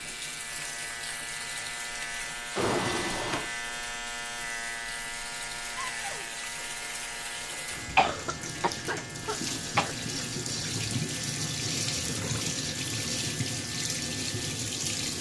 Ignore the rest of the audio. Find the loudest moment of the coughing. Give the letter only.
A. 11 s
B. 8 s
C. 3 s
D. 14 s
B.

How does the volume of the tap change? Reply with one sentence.
The loudness of the tap goes up.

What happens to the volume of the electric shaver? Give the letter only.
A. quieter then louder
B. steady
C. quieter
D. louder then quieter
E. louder
C.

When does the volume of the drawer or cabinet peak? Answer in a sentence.
The volume of the drawer or cabinet peaks at 3 seconds.